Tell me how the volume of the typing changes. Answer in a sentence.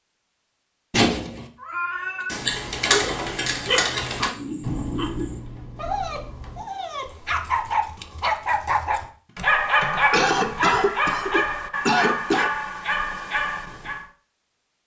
The loudness of the typing goes down, then up.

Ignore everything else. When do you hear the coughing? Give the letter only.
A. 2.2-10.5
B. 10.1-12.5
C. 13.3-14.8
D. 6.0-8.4
B.